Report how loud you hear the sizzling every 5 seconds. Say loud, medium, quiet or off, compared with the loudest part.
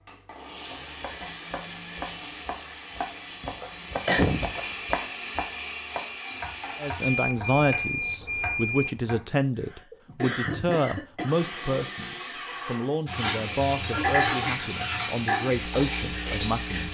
off, off, loud, loud.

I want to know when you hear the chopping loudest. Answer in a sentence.
The volume of the chopping peaks at 5 seconds.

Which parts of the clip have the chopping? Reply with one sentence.
The chopping can be heard from 0.7 to 9.3 s.